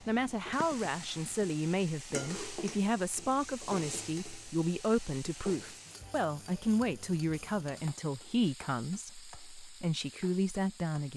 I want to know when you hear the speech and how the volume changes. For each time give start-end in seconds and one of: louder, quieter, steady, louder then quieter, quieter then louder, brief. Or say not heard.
0.1-11.1 steady.